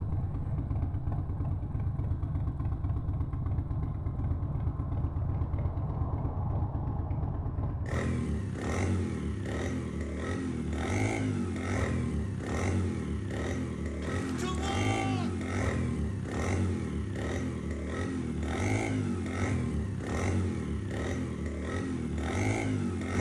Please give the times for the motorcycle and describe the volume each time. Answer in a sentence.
You can hear the motorcycle from 0.0 to 23.1 s, at a steady volume.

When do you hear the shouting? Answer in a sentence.
You can hear the shouting from 14.0 to 15.3 s.